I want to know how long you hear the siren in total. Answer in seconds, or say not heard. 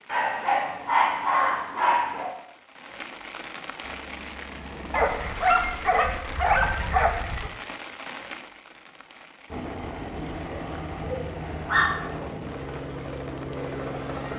not heard.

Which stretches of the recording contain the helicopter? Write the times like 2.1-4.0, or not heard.
3.8-6.3, 9.4-14.3.